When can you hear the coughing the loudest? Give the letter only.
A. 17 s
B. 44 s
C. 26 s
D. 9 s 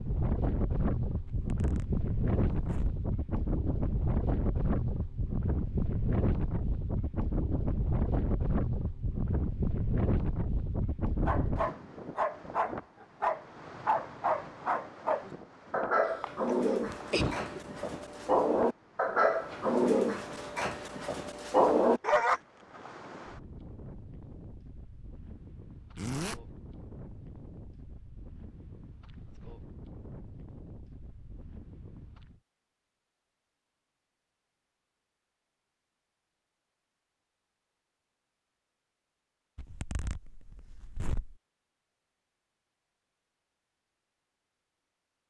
A.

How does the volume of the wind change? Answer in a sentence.
The volume of the wind goes down.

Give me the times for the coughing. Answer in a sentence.
The coughing can be heard from 16.1 to 17.6 s.